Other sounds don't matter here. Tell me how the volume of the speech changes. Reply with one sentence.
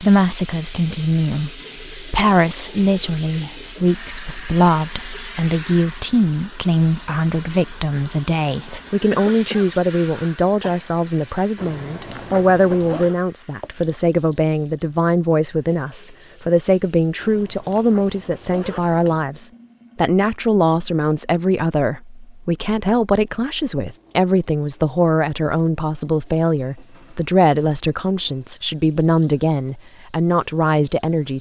The loudness of the speech stays about the same.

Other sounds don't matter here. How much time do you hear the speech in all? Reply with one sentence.
You can hear the speech for 31 seconds altogether.